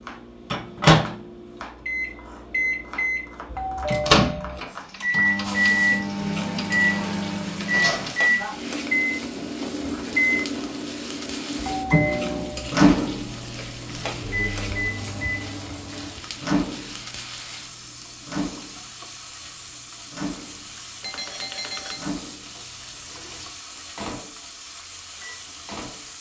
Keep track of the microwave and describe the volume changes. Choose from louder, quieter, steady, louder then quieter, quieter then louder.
quieter.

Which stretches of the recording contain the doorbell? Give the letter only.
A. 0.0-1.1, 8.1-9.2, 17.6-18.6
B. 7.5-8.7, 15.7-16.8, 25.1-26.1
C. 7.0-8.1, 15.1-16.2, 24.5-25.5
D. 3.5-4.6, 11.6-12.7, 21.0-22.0
D.